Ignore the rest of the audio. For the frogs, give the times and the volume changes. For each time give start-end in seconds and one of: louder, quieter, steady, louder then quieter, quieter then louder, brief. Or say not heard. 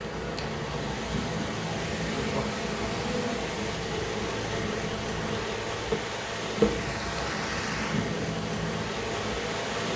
not heard.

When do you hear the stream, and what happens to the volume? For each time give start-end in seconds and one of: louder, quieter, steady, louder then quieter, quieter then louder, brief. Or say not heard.
0.0-9.9 steady.